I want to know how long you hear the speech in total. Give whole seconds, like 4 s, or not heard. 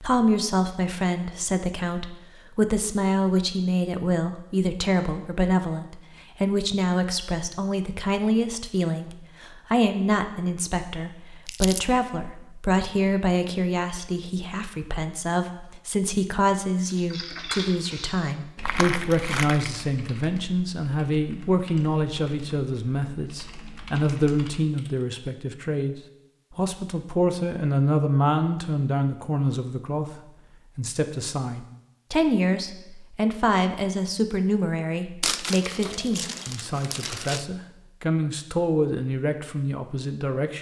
40 s.